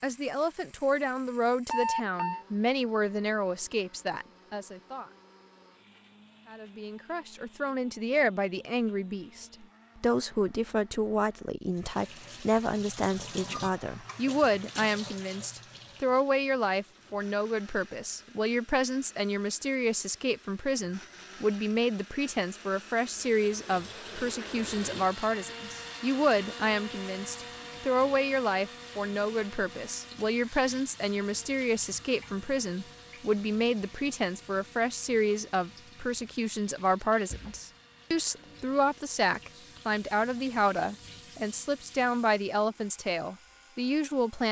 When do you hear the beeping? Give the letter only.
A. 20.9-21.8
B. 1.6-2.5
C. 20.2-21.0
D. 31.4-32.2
B.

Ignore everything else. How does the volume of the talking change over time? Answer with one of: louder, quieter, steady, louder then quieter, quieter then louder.
steady.